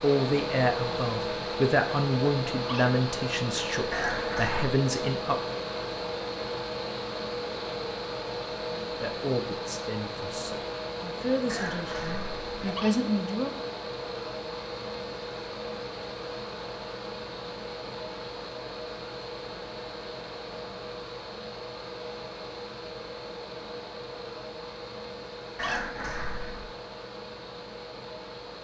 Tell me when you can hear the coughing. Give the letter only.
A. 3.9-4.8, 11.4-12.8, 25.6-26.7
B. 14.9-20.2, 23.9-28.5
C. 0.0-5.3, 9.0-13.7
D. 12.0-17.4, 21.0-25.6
A.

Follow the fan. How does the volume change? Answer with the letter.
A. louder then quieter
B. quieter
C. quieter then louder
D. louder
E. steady
B.